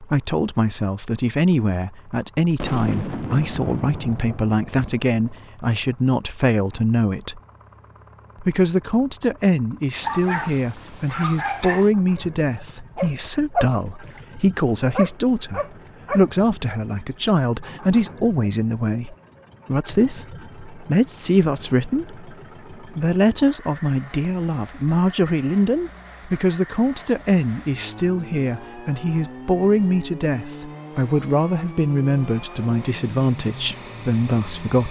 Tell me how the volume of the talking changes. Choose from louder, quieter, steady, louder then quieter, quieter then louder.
steady.